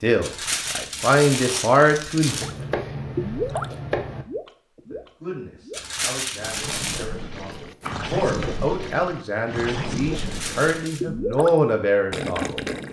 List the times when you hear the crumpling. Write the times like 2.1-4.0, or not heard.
0.2-2.5, 5.7-7.0, 10.2-11.0.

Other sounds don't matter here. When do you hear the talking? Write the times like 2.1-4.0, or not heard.
0.0-2.5, 4.9-12.6.